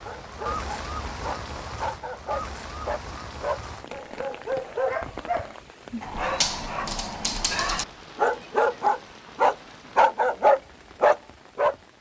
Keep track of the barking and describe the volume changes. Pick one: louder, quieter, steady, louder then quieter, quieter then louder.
louder.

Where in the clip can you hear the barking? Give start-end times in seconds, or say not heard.
0.0-11.8.